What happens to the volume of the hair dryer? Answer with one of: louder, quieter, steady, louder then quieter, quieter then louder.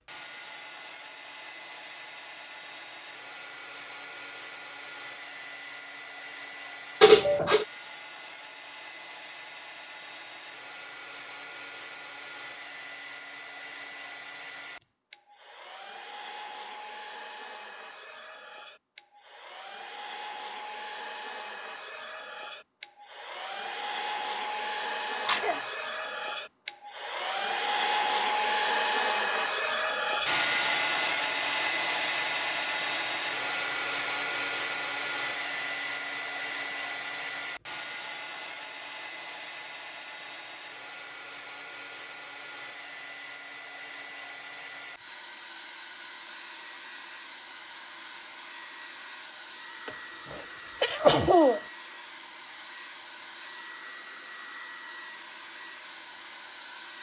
louder then quieter.